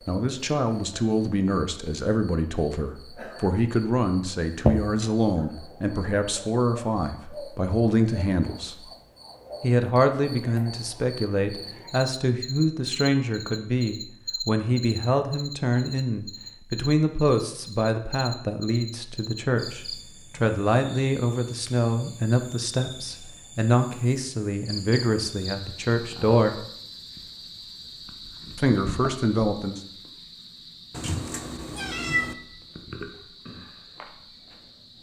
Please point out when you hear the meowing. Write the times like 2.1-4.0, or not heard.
30.9-32.4.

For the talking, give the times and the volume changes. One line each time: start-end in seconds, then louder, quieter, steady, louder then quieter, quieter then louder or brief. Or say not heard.
0.1-8.8 steady
9.6-26.6 steady
28.6-29.8 brief.